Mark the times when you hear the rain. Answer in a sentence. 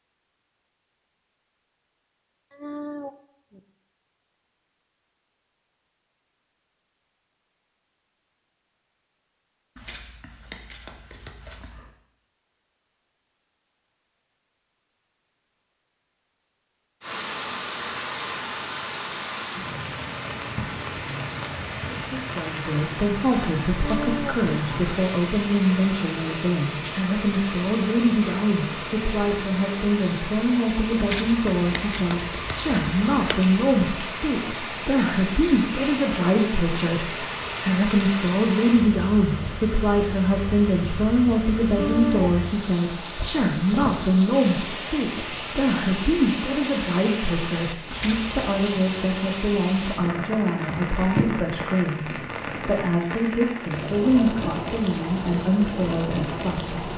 You can hear the rain from 17.0 to 56.9 s.